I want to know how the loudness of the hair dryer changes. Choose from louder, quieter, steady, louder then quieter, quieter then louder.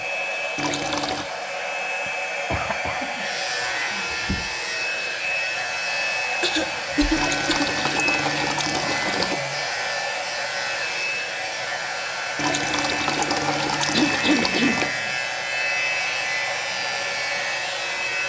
steady.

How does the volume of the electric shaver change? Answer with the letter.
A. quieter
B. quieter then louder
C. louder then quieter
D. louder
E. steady
E.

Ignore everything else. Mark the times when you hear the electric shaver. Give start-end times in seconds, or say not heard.
3.1-18.2.